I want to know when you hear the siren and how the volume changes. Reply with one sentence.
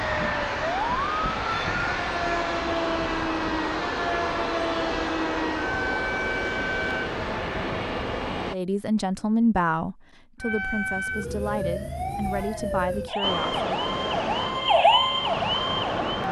You can hear the siren from 0.0 to 7.1 s, at a steady volume; and from 10.4 to 16.1 s, getting louder.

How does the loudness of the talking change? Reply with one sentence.
The volume of the talking goes down.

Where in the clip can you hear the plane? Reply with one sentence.
You can hear the plane from 0.0 to 8.6 s and from 13.2 to 16.2 s.